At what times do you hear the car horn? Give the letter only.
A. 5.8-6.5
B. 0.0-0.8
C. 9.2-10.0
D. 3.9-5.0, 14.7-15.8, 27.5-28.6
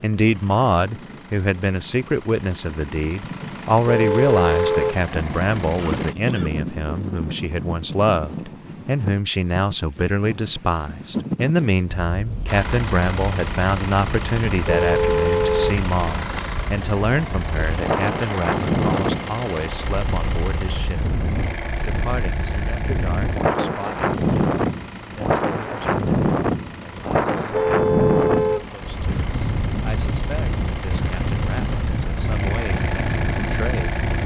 D.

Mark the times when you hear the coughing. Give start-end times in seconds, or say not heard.
5.8-6.5.